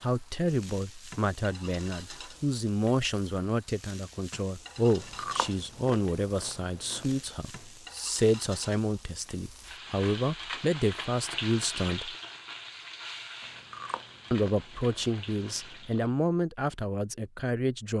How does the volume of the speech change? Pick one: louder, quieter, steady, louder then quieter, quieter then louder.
steady.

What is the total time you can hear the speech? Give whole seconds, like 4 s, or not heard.
16 s.